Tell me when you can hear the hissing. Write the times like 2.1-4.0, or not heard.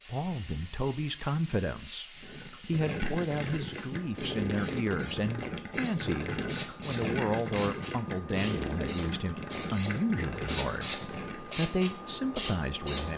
0.0-13.1.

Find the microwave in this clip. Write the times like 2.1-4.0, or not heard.
not heard.